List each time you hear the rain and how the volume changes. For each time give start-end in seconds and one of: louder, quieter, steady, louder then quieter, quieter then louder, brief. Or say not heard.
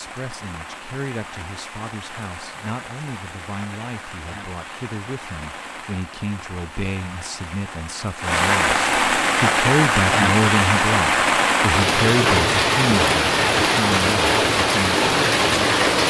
0.0-16.0 louder.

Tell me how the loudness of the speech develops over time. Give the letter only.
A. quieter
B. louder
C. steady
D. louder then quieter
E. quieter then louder
B.